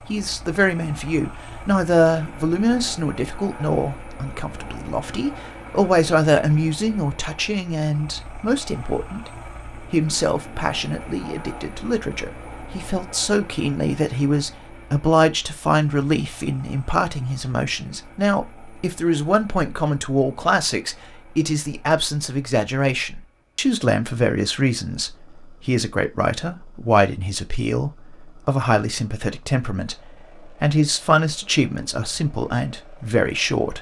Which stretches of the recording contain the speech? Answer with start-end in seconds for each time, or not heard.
0.1-9.3, 9.9-33.7.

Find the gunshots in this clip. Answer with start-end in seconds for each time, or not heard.
not heard.